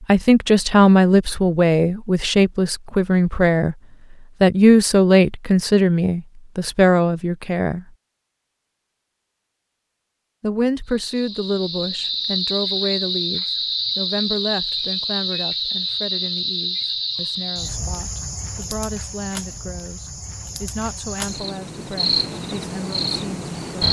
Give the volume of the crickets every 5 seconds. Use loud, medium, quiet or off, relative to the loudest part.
off, off, loud, loud, loud.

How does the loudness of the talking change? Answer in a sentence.
The volume of the talking goes down.